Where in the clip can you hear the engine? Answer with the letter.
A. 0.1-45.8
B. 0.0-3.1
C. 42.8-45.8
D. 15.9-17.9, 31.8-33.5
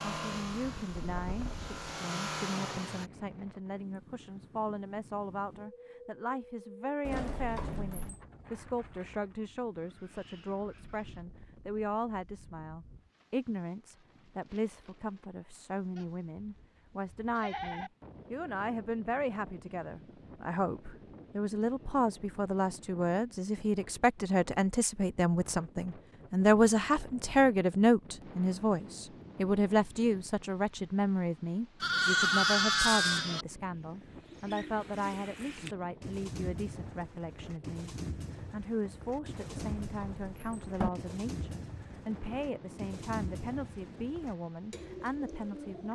B.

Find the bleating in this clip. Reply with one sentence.
The bleating can be heard from 15.9 to 17.9 s and from 31.8 to 33.5 s.